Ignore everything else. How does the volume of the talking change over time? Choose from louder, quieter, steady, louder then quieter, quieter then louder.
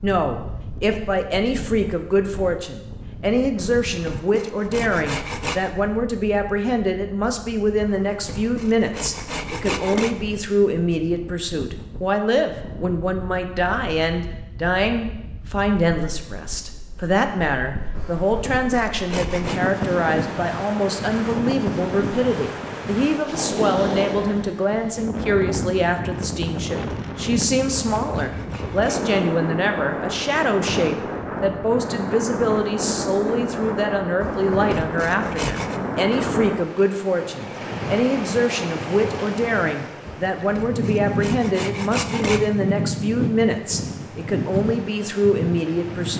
steady.